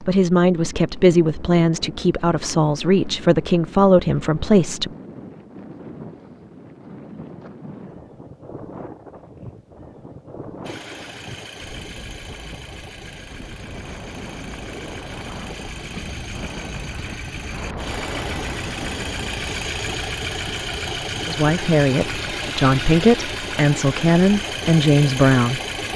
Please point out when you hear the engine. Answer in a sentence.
You can hear the engine from 10.6 to 25.9 s.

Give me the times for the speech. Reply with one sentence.
The speech can be heard from 0.0 to 4.9 s and from 21.2 to 25.6 s.